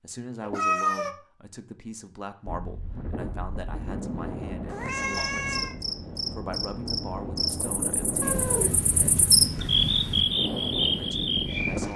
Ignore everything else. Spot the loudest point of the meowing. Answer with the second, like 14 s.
1 s.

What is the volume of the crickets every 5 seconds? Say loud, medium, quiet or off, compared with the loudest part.
off, loud, loud.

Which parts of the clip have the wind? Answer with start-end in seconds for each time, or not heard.
2.5-11.9.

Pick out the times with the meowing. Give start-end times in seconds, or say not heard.
0.4-1.1, 4.7-5.8, 8.2-10.2.